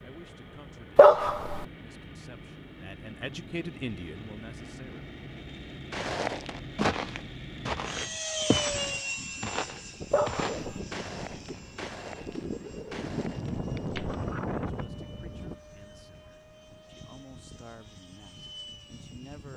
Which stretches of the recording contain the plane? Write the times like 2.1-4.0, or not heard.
0.0-19.5.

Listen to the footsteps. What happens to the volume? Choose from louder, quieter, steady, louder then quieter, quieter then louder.
quieter.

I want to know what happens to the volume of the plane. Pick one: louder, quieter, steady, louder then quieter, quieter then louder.
louder then quieter.